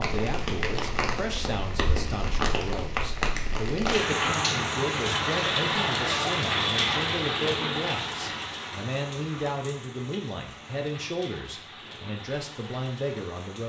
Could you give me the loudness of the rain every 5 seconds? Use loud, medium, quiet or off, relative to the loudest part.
loud, loud, quiet.